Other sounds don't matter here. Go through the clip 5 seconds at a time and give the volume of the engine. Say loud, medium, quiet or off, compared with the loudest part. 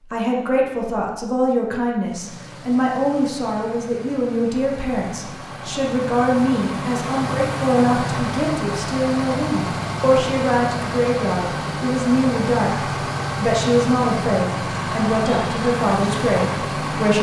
quiet, loud, loud, loud.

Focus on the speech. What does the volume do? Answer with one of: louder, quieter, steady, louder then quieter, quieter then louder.
steady.